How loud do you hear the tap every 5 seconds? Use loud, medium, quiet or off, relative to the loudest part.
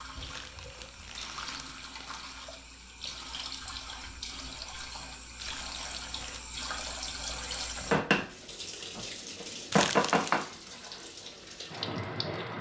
medium, loud, loud.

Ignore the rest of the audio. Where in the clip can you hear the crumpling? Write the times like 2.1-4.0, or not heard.
0.2-2.4, 5.3-6.5, 9.7-10.3.